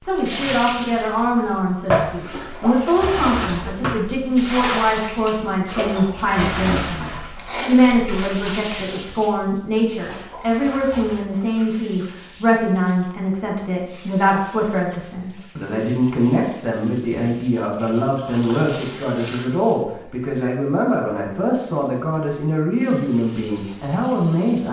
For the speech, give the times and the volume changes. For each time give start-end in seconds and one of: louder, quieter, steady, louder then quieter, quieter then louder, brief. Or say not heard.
0.0-24.6 steady.